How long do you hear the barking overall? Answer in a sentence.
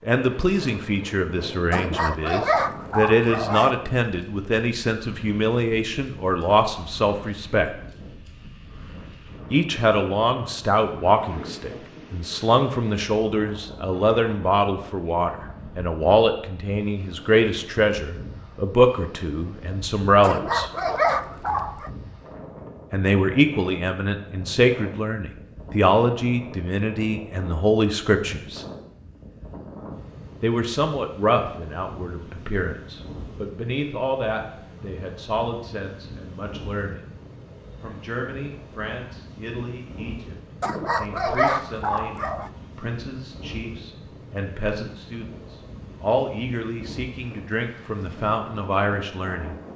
You can hear the barking for 6 seconds altogether.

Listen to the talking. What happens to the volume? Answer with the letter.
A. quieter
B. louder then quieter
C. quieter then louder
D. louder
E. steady
A.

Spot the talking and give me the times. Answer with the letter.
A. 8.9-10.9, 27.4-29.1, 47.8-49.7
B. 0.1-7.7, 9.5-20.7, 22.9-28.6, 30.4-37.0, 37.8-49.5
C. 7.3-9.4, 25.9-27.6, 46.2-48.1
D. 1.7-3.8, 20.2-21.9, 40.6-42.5
B.